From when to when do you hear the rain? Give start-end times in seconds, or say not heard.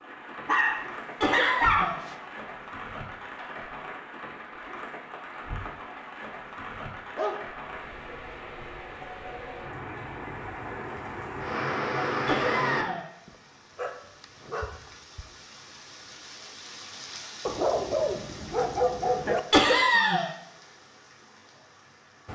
0.0-22.3.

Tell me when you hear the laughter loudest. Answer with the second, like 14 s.
20 s.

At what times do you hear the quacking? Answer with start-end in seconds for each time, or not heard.
not heard.